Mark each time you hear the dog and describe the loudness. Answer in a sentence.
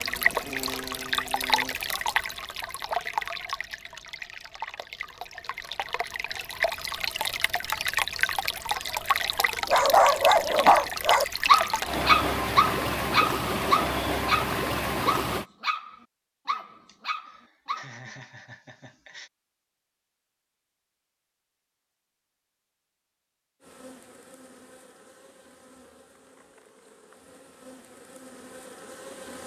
You can hear the dog from 9.7 to 17.9 s, getting quieter.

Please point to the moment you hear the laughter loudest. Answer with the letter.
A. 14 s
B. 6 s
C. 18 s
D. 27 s
C.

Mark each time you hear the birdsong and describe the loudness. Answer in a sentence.
The birdsong can't be heard in this clip.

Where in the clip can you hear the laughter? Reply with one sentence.
You can hear the laughter from 16.9 to 19.3 s.